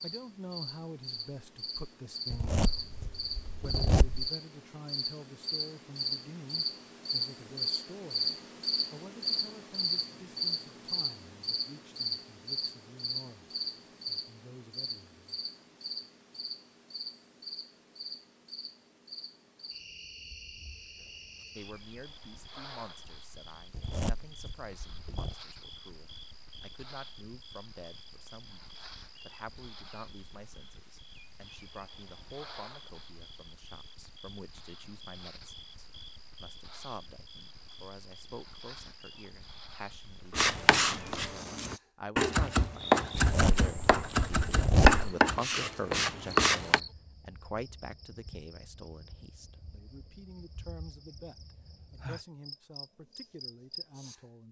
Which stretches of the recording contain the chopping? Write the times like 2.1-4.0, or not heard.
40.3-46.8.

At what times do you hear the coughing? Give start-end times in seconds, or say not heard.
not heard.